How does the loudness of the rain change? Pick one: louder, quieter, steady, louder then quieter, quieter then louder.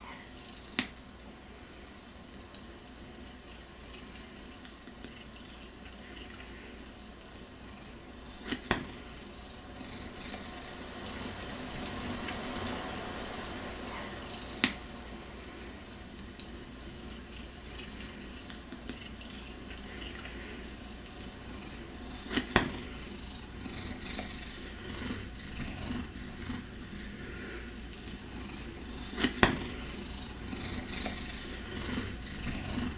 louder then quieter.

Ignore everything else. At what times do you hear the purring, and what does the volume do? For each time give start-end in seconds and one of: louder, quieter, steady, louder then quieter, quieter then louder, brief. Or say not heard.
0.0-32.9 louder.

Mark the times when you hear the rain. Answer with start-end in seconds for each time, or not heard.
0.0-22.8.